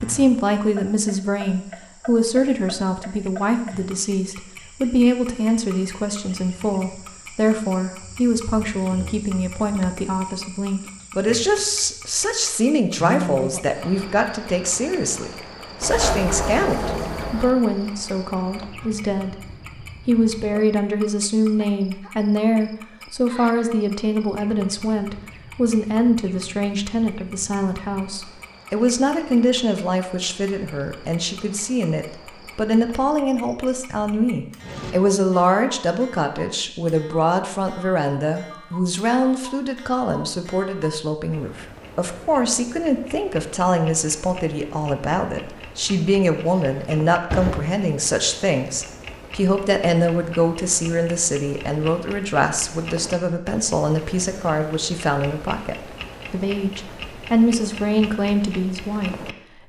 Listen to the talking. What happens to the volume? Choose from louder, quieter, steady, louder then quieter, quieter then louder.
steady.